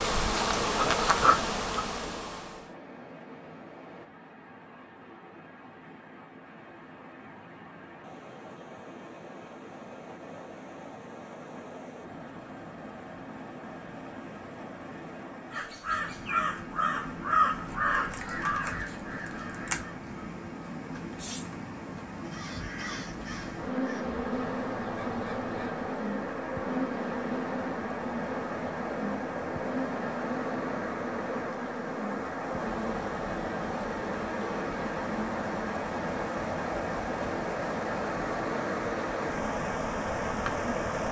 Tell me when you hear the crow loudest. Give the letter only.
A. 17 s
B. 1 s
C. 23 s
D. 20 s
A.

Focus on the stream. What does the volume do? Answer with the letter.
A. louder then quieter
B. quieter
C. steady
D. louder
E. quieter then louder
D.